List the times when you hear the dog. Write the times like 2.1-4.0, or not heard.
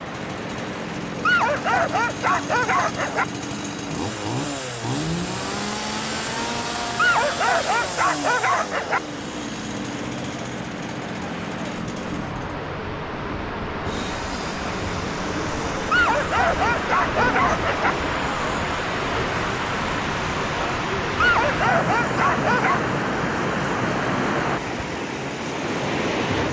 1.2-3.2, 7.0-9.0, 15.9-17.9, 21.2-22.9.